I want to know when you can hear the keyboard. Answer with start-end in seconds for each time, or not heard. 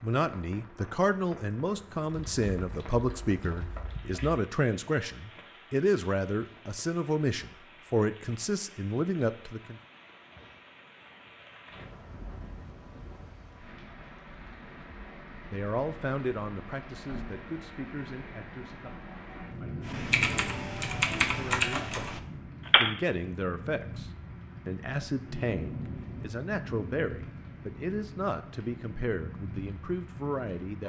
2.1-4.2, 19.9-22.9.